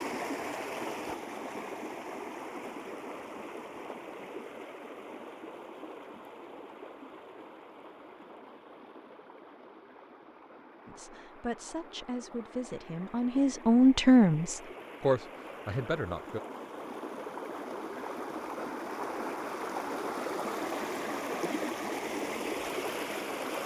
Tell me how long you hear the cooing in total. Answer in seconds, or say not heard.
not heard.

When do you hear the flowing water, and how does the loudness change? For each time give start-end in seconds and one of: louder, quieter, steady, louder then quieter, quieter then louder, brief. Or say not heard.
0.0-23.6 quieter then louder.